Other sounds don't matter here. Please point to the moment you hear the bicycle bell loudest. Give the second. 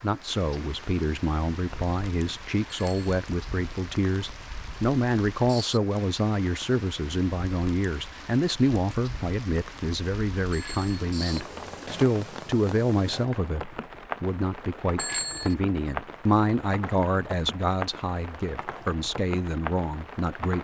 15 s.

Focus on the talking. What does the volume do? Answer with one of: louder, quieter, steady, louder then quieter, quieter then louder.
steady.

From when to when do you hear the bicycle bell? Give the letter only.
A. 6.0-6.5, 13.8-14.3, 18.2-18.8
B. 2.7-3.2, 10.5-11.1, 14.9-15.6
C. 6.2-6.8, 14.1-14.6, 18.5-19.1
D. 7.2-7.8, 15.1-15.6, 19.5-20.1
B.